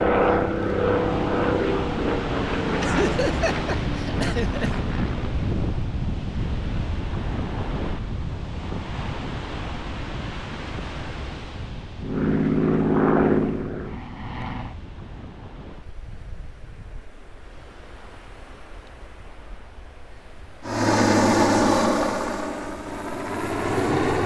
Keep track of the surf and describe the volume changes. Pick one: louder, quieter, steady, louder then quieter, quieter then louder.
quieter.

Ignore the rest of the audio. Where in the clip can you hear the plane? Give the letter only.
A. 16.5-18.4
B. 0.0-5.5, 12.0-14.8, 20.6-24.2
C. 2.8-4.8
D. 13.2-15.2
B.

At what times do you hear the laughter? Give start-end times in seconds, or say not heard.
2.8-4.8.